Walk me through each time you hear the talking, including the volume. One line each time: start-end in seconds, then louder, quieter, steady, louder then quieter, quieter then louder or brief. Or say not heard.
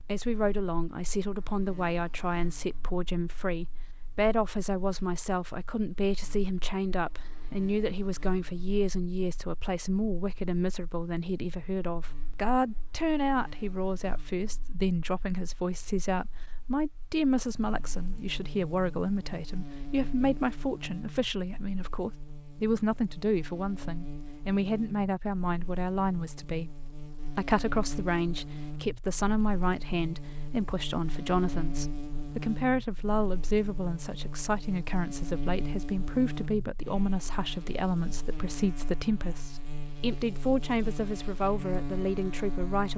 0.1-42.9 steady.